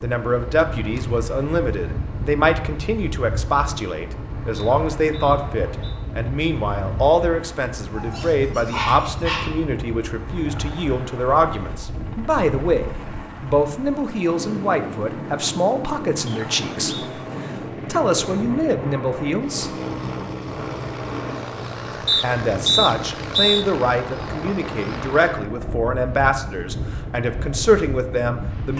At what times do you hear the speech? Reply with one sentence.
You can hear the speech from 0.0 to 19.7 s and from 22.2 to 28.7 s.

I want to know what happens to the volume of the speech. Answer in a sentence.
The volume of the speech stays about the same.